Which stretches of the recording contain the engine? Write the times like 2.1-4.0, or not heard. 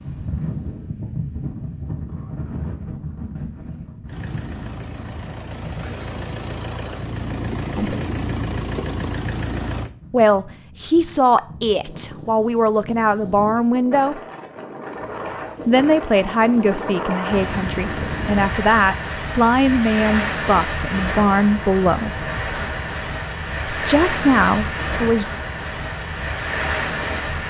4.0-9.9, 14.9-18.6.